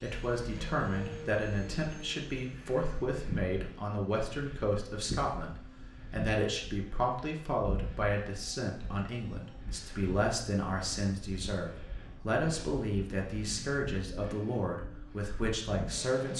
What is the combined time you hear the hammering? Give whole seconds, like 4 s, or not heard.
not heard.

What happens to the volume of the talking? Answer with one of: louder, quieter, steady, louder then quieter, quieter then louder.
steady.